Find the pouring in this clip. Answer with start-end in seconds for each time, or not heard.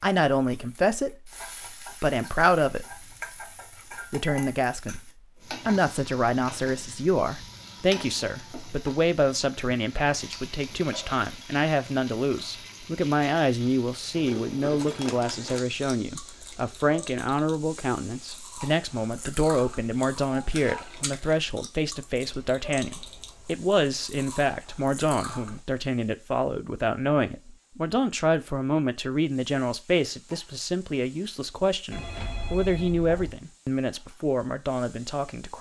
not heard.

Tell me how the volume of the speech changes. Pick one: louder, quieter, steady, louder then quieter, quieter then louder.
steady.